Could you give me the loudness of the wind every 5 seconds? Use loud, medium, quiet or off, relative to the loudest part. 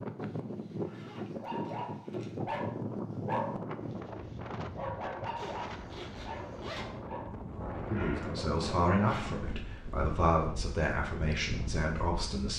loud, loud, medium.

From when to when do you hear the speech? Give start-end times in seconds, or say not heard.
7.9-12.5.